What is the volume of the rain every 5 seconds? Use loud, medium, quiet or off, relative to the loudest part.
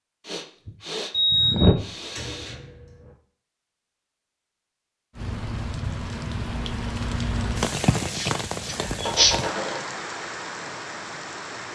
off, loud, medium.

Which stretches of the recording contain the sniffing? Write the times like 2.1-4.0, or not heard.
0.2-2.5, 8.1-9.3.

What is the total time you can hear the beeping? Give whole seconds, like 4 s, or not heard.
3 s.